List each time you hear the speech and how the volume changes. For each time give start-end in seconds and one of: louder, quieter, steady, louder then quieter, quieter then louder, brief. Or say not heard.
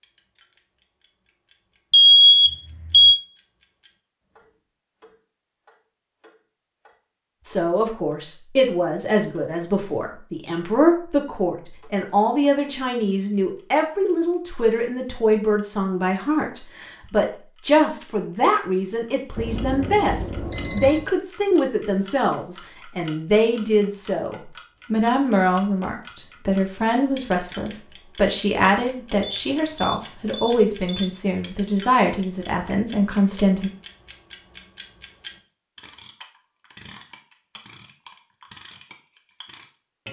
7.5-33.7 steady.